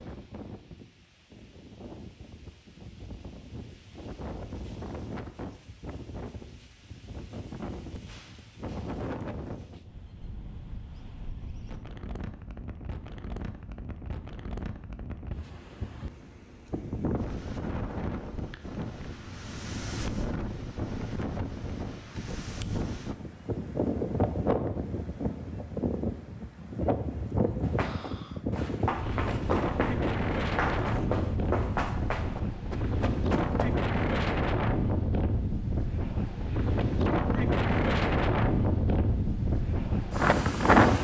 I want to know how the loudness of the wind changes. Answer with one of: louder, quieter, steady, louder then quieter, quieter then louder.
louder.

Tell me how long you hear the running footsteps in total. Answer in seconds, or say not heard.
6 s.